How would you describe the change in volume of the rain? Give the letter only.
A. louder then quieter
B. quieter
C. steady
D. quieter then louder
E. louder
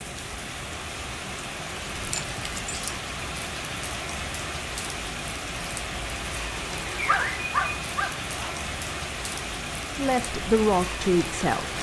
C.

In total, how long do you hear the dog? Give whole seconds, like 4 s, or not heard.
3 s.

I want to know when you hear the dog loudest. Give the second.
7 s.